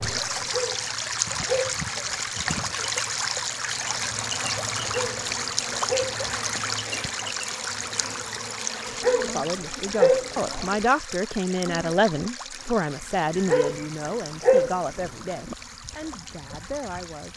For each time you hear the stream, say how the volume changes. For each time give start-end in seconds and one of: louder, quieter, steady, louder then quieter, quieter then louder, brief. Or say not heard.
0.0-17.3 quieter.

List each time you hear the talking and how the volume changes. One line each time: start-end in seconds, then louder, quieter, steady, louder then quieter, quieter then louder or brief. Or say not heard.
9.2-17.3 quieter.